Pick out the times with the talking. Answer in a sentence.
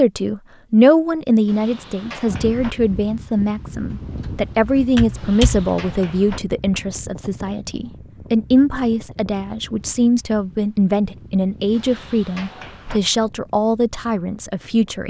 You can hear the talking from 0.0 to 15.0 s.